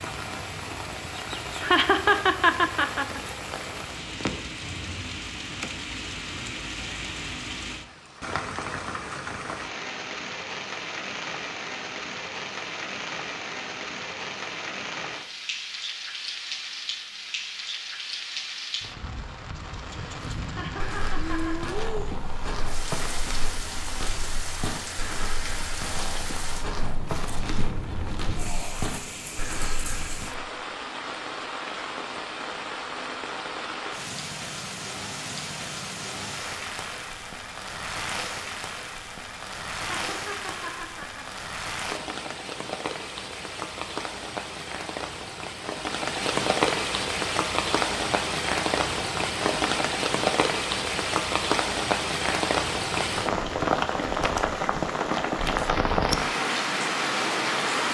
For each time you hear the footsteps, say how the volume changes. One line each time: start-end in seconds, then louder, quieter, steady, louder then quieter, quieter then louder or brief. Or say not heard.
20.2-30.5 steady.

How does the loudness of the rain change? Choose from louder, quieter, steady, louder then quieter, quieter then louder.
louder.